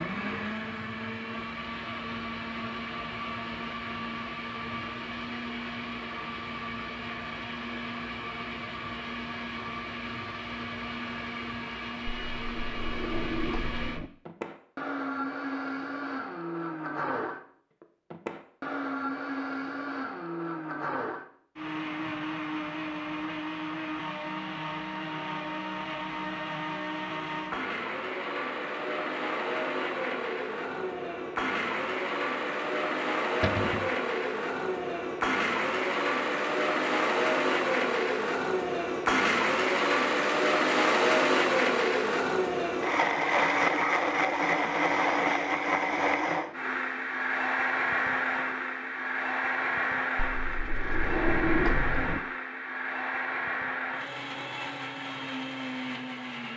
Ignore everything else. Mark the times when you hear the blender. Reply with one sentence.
The blender can be heard from 0.0 to 56.5 s.